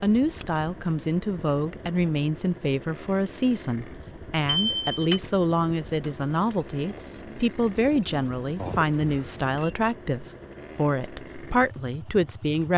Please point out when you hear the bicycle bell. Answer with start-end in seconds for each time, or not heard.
0.4-1.1, 4.5-5.2, 8.6-9.8.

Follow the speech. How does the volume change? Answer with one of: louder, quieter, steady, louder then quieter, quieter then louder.
steady.